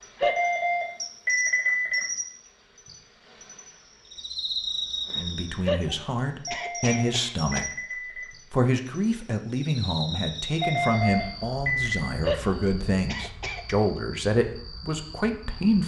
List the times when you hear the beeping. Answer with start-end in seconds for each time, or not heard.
0.2-2.1, 6.5-8.3, 10.6-12.1.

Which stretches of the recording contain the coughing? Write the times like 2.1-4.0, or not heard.
0.1-0.7, 5.7-7.7, 12.2-13.7.